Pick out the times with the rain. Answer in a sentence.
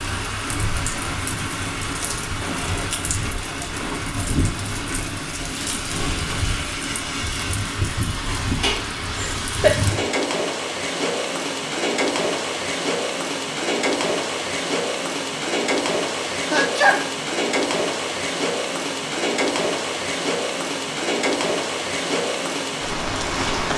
You can hear the rain from 0.0 to 23.7 s.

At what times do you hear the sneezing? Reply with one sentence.
The sneezing can be heard from 8.6 to 9.8 s and from 16.4 to 17.1 s.